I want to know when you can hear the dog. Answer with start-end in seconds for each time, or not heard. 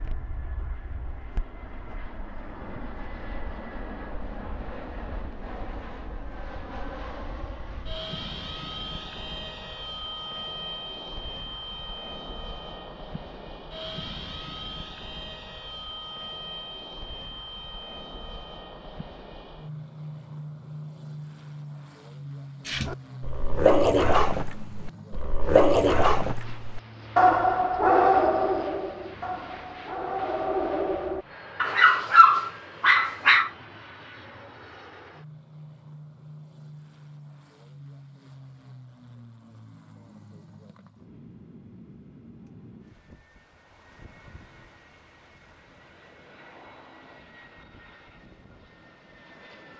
22.6-33.5.